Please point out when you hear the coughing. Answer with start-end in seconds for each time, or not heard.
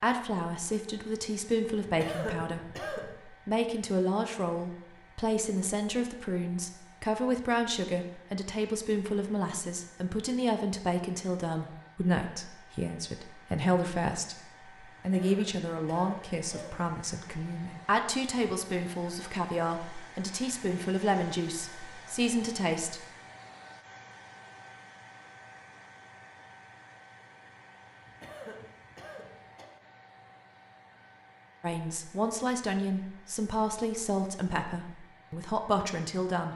1.9-3.1, 14.9-16.9, 28.1-29.7.